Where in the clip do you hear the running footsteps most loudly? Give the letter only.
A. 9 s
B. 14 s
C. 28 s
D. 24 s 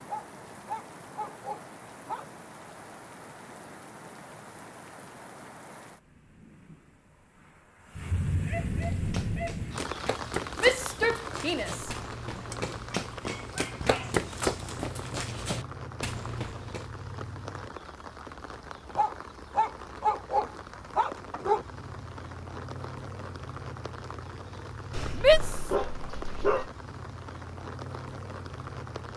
B.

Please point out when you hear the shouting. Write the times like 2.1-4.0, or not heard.
10.6-11.9, 25.1-25.7.